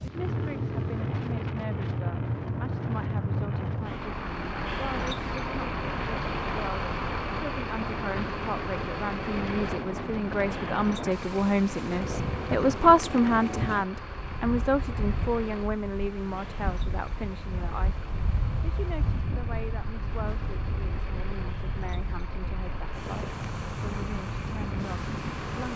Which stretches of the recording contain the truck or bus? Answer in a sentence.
You can hear the truck or bus from 0.0 to 25.7 s.